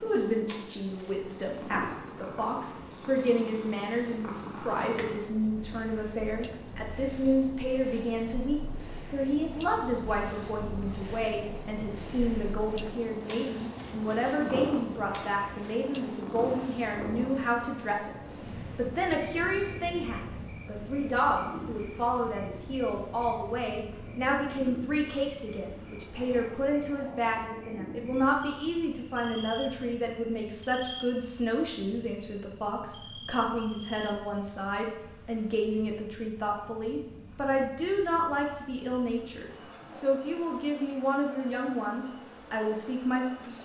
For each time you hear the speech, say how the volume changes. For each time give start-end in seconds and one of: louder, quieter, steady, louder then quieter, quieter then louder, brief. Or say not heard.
0.0-43.6 steady.